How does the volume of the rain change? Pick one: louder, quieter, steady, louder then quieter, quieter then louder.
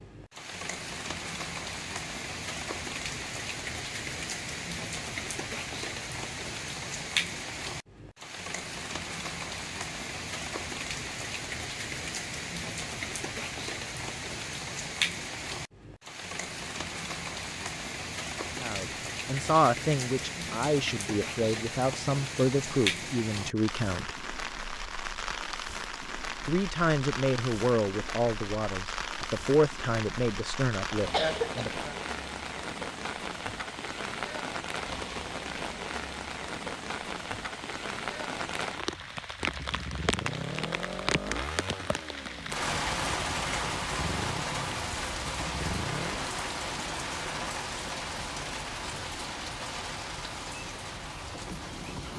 steady.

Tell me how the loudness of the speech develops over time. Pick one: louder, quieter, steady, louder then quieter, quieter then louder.
steady.